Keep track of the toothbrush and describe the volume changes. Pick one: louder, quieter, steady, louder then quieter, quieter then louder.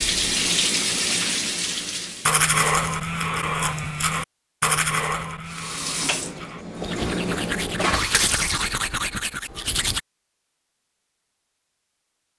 quieter then louder.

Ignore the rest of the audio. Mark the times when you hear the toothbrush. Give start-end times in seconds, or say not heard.
2.2-10.0.